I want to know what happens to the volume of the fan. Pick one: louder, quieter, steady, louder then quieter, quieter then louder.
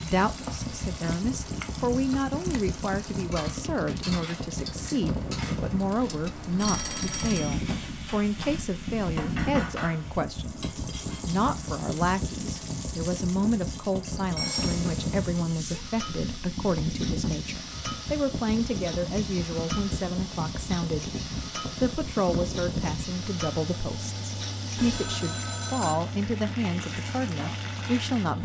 steady.